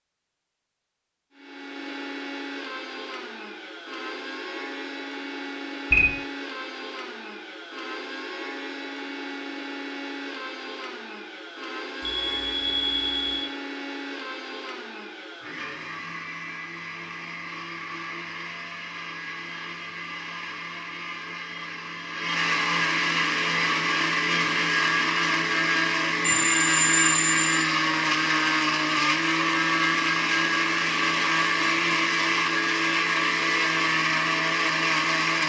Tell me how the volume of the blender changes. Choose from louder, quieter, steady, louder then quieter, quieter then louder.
louder.